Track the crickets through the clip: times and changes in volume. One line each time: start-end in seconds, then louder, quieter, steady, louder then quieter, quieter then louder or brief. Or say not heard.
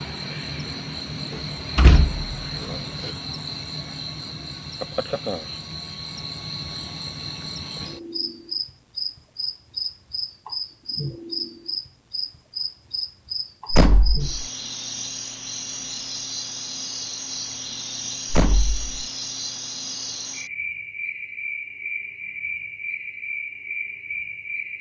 0.0-24.7 steady.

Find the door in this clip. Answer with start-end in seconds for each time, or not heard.
1.3-3.1, 13.7-14.4, 18.3-18.9.